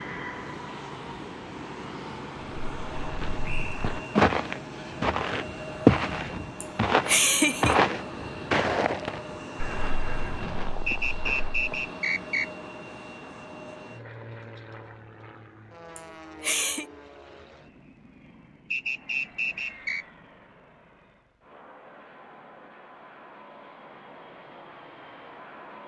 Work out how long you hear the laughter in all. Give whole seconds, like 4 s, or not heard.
2 s.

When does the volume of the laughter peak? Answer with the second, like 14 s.
7 s.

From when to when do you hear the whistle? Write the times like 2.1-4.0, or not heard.
3.4-3.9, 10.8-12.5, 18.7-20.1.